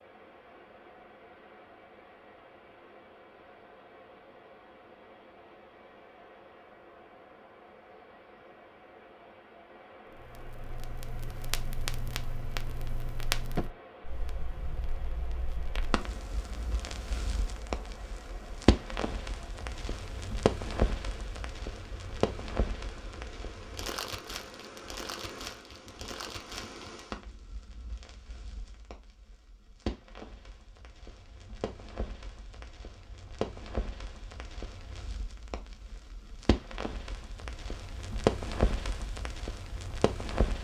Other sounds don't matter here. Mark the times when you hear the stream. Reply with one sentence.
The stream can be heard from 0.0 to 27.2 s.